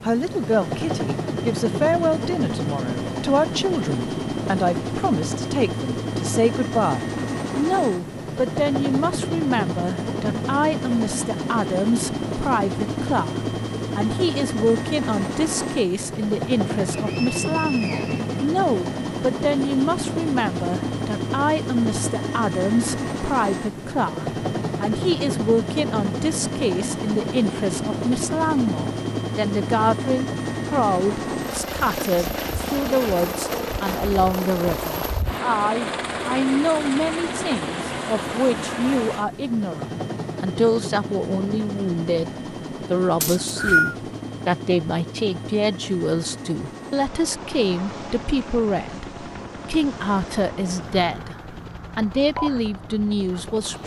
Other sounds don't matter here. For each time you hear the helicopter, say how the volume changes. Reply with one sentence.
You can hear the helicopter from 0.0 to 53.8 s, getting quieter.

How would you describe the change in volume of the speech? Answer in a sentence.
The volume of the speech stays about the same.